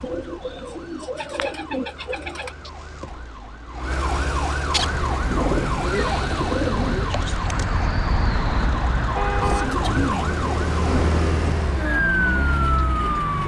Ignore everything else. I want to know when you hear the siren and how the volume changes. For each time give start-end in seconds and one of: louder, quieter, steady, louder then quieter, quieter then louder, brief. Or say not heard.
0.0-13.4 louder.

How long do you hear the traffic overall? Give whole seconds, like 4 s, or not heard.
9 s.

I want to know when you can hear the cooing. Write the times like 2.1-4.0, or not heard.
0.0-2.5, 5.3-7.2, 9.3-11.6.